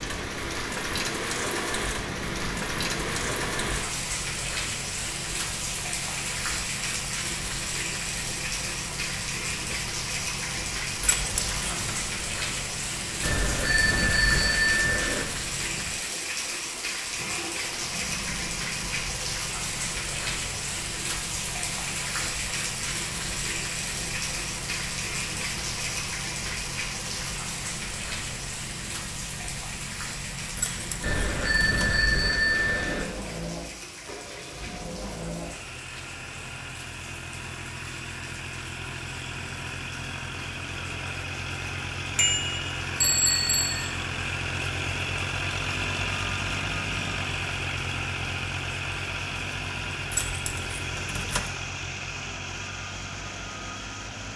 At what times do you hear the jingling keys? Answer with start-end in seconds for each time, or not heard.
11.0-12.0, 30.6-31.9, 50.1-51.5.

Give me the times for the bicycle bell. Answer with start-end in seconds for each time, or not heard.
13.2-15.2, 31.0-33.0, 42.1-43.8.